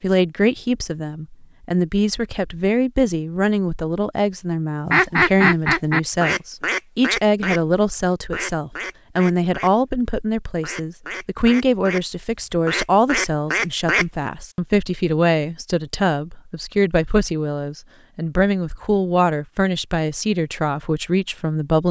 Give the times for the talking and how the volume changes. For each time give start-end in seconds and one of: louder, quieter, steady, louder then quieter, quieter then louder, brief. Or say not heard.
0.0-21.8 steady.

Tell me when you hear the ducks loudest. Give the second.
5 s.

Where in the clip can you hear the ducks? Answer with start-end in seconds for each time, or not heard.
4.8-7.6, 8.3-9.7, 10.6-12.0, 12.7-14.1.